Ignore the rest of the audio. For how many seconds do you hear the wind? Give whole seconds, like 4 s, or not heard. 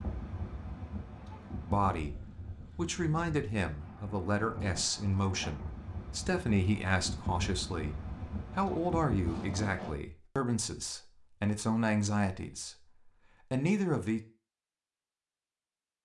10 s.